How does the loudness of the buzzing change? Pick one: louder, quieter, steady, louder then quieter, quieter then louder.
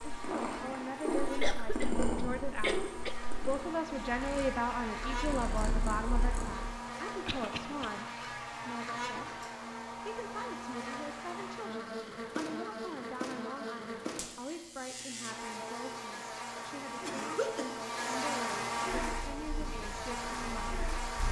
louder.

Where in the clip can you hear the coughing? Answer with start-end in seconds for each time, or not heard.
1.4-3.1, 7.2-7.9, 16.6-17.9.